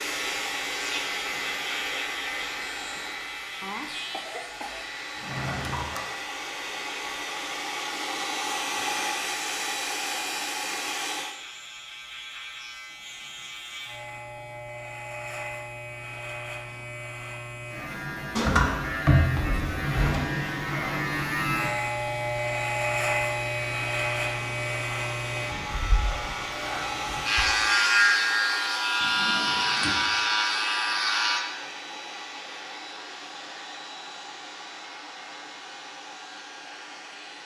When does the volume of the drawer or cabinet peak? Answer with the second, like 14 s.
19 s.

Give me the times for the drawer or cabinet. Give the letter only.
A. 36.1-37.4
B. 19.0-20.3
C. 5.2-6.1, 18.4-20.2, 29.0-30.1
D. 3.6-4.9
C.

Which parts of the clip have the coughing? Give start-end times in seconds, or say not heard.
3.6-4.9.